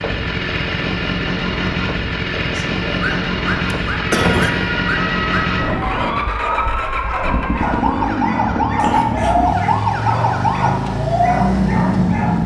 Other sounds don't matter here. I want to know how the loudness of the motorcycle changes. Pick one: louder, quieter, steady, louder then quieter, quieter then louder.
steady.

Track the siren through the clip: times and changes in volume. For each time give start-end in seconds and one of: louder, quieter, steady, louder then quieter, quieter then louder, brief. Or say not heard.
4.1-12.4 louder.